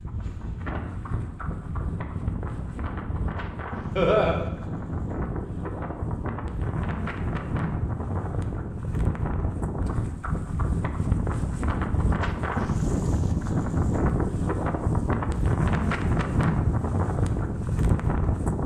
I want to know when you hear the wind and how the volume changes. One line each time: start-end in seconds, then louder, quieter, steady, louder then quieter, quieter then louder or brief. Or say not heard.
0.0-18.6 louder.